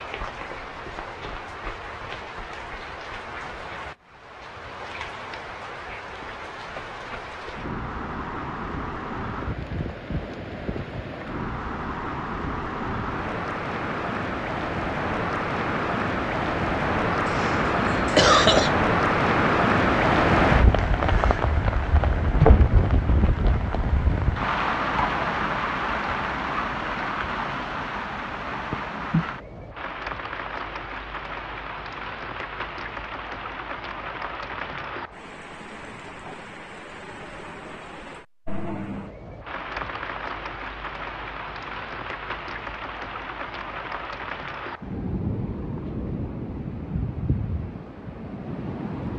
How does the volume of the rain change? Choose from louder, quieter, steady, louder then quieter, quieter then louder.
louder then quieter.